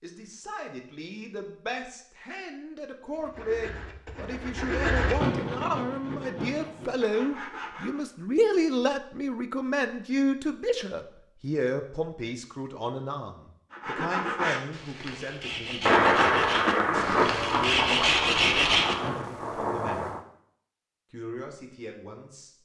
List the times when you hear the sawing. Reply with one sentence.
The sawing can be heard from 3.1 to 8.1 s and from 13.7 to 19.1 s.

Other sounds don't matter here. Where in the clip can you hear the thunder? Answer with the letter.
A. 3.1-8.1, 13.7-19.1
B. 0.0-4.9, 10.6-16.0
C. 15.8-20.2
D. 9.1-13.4
C.